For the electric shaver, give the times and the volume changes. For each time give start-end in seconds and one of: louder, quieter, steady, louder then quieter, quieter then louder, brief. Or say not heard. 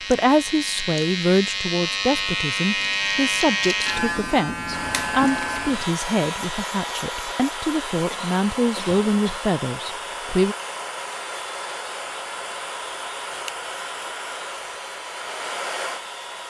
0.0-16.4 quieter.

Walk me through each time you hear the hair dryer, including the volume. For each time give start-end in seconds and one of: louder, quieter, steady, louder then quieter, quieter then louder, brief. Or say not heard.
4.7-16.4 steady.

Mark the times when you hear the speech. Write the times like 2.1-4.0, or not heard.
0.1-10.6.